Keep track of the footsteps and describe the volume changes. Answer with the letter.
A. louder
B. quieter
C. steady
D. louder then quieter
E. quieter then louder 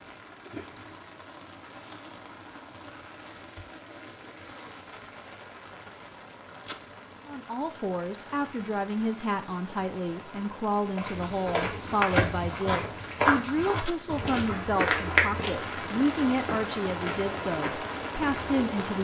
B.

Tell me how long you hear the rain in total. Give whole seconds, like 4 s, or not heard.
19 s.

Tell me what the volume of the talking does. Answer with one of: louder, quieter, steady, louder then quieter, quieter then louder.
steady.